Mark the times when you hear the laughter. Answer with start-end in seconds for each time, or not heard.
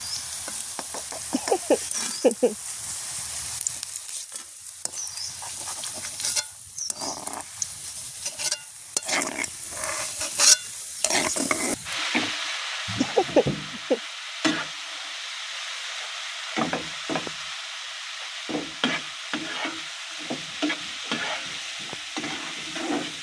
1.3-2.5, 13.0-14.0.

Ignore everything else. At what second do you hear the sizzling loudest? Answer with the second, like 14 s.
11 s.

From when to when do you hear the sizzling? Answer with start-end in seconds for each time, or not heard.
0.0-23.1.